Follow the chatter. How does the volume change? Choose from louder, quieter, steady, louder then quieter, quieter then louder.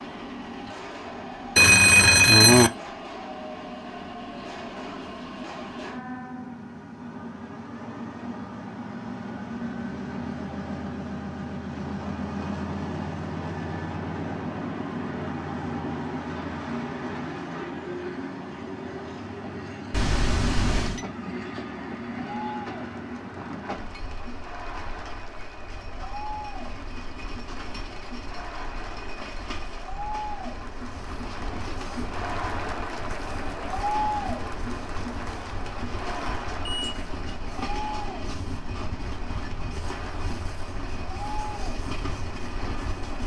louder then quieter.